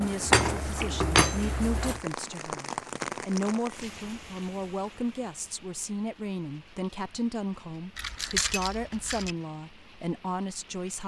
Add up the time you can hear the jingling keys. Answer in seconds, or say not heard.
3 s.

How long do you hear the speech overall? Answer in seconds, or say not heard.
11 s.